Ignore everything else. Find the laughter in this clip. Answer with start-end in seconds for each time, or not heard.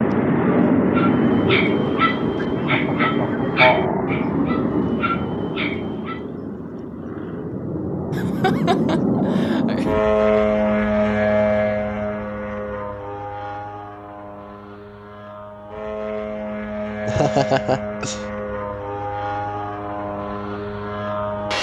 2.4-4.0, 8.1-9.8, 17.1-18.2.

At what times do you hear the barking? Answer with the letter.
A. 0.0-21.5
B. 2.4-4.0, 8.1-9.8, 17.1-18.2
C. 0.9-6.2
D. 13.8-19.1
C.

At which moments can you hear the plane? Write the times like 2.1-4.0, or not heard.
0.0-21.5.